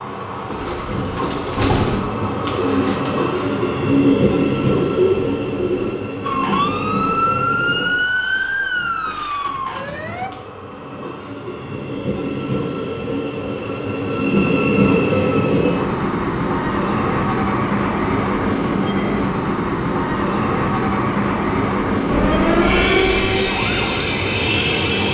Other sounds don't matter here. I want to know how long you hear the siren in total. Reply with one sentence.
You can hear the siren for 7 seconds altogether.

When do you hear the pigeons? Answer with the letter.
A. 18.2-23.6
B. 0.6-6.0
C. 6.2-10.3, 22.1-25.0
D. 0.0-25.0
B.